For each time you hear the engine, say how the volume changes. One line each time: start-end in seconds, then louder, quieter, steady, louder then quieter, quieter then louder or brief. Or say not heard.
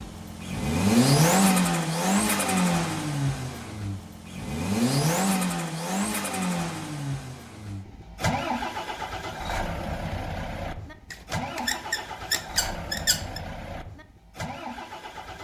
0.0-15.3 quieter.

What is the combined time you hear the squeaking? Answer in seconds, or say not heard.
2 s.